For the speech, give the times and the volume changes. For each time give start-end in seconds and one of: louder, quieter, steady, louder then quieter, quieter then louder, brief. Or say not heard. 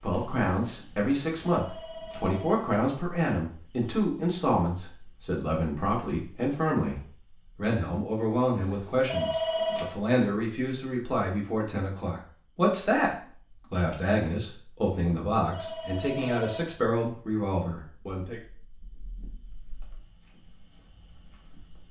0.0-18.4 steady.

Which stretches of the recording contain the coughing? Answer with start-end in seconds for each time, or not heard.
not heard.